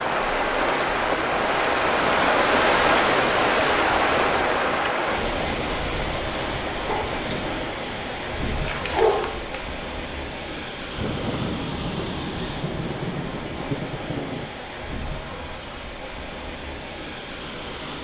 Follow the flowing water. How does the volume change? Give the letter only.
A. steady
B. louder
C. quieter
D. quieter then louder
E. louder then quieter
C.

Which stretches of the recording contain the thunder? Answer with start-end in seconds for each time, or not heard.
10.9-14.5.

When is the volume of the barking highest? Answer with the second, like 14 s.
9 s.